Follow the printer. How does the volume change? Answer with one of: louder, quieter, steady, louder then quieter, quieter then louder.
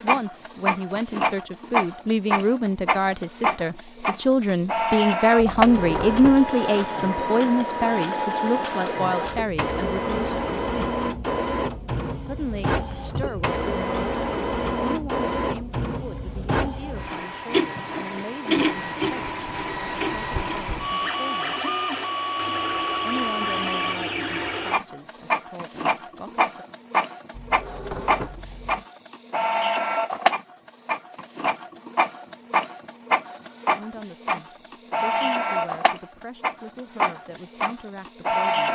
steady.